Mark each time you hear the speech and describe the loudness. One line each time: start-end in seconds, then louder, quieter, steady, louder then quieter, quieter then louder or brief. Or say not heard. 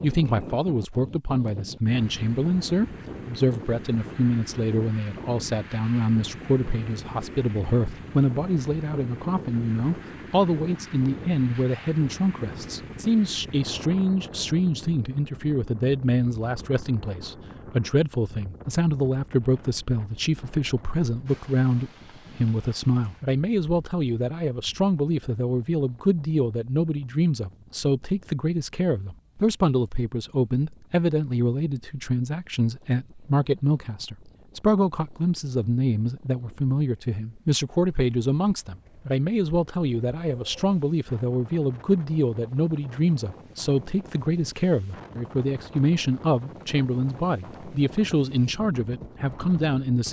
0.0-50.0 steady.